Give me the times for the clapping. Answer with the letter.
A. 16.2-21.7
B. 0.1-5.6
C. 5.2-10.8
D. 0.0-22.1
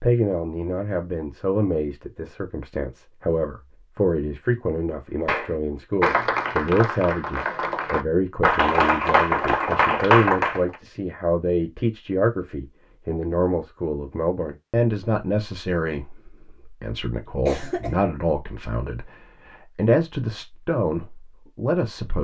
C.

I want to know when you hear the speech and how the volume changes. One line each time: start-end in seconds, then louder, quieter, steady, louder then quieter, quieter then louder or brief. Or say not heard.
0.0-22.1 steady.